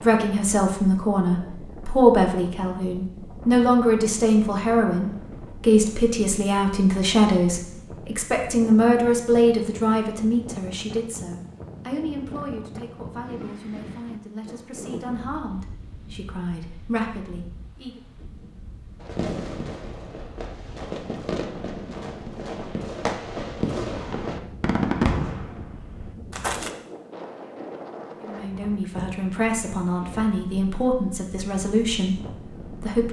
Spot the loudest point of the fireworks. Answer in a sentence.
The loudest moment of the fireworks is at 25 seconds.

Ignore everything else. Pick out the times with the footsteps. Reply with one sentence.
You can't hear the footsteps here.